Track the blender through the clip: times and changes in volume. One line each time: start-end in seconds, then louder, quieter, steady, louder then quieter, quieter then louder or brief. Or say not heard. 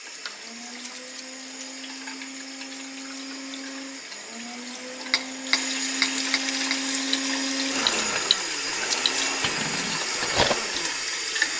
0.0-11.5 louder.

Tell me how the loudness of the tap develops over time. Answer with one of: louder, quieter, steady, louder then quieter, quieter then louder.
louder.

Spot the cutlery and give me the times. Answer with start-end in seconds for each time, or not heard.
5.1-10.6.